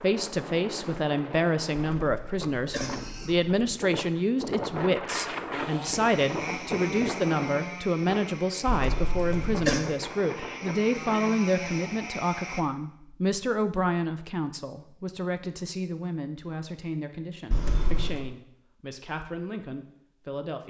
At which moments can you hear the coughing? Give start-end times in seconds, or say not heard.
1.9-3.8, 8.7-9.8, 17.5-18.2.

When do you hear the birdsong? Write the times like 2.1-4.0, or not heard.
not heard.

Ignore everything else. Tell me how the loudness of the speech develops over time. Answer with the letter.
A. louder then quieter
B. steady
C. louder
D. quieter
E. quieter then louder
D.